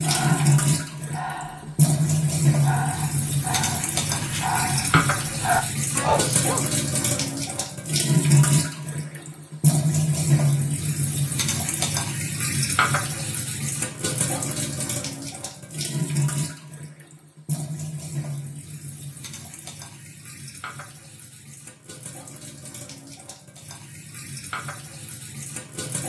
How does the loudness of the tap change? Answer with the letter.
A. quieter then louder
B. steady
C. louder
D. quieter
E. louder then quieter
D.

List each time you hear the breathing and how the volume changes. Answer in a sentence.
The breathing can be heard from 0.0 to 6.2 s, getting quieter then louder.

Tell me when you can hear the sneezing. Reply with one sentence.
You can hear the sneezing from 5.9 to 6.7 s.